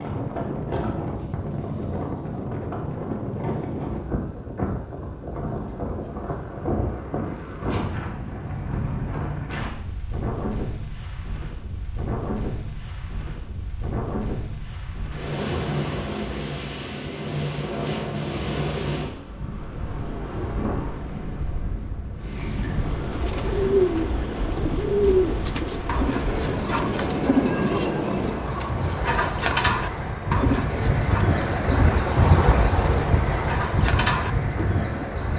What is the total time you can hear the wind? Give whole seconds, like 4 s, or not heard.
35 s.